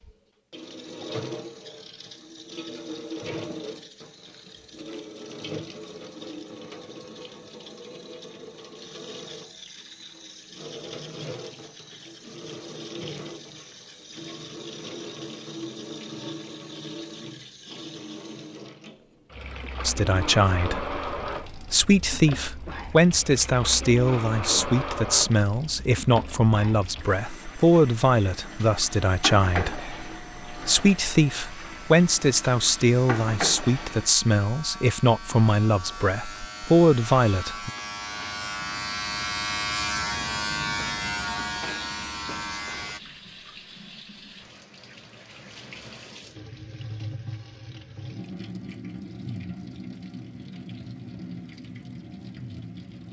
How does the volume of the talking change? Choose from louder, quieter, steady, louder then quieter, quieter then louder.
steady.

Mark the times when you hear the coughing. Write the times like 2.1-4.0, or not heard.
not heard.